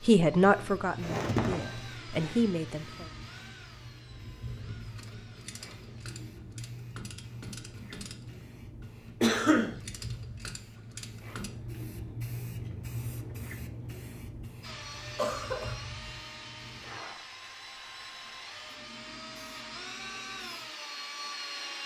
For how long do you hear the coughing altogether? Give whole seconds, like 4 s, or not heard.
2 s.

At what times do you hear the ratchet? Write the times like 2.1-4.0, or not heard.
4.5-11.5.